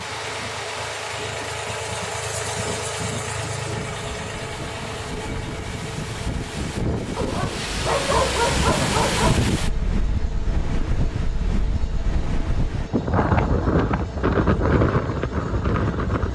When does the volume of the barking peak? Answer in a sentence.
The volume of the barking peaks at 8 seconds.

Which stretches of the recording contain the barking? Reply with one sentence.
You can hear the barking from 7.2 to 9.4 s.